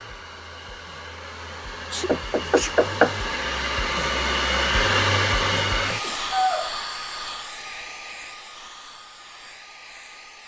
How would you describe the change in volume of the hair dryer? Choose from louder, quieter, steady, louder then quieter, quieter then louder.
louder then quieter.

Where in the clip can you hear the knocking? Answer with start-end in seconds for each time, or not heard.
2.0-3.1.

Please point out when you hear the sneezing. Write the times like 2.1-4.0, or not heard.
1.9-2.8, 6.0-7.3.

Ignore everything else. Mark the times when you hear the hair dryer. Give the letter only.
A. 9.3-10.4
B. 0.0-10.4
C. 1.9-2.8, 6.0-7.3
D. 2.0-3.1
B.